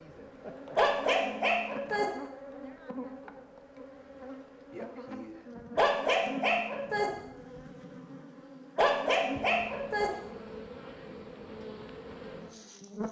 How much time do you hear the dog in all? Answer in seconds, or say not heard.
4 s.